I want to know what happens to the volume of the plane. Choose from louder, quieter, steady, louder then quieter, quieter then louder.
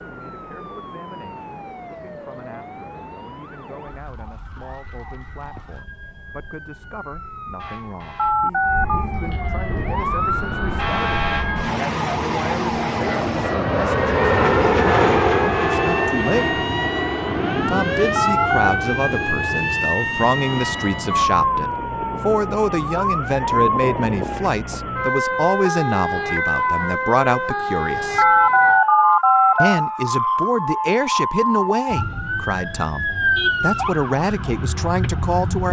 louder then quieter.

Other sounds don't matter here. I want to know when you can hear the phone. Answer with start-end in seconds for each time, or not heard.
8.2-9.1, 18.1-18.8, 28.1-29.8.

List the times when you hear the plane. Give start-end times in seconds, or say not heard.
9.7-21.2.